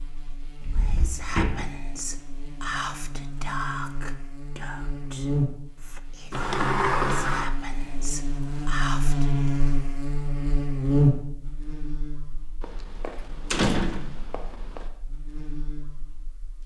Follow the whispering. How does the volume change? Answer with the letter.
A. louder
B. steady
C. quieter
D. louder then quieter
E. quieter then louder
E.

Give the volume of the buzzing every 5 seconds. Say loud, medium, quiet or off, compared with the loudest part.
quiet, loud, loud, quiet.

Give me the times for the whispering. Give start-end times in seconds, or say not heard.
0.8-9.6.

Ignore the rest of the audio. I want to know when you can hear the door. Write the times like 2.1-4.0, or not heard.
0.6-1.6, 6.3-7.5, 12.6-14.8.